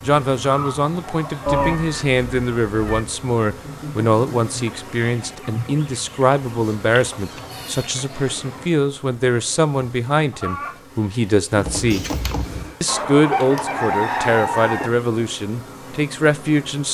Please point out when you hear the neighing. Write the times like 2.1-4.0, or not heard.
not heard.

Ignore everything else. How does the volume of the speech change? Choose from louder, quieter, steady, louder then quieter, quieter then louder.
steady.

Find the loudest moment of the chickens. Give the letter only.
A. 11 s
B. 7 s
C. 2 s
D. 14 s
D.